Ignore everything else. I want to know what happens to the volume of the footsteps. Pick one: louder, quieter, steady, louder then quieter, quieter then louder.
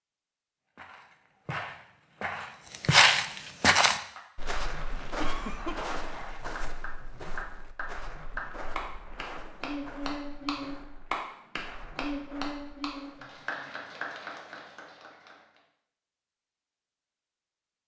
quieter.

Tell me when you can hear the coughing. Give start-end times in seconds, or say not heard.
5.2-5.8.